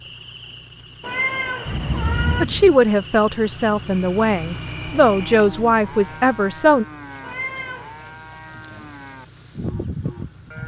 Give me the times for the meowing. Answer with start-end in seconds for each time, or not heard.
1.0-2.5, 7.2-8.0.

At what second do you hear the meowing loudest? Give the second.
1 s.